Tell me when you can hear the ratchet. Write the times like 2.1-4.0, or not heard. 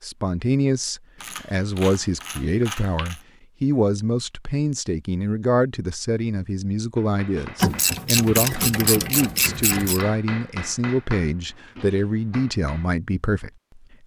1.2-3.2, 7.6-10.1.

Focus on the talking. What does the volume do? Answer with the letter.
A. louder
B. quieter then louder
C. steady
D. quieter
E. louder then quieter
C.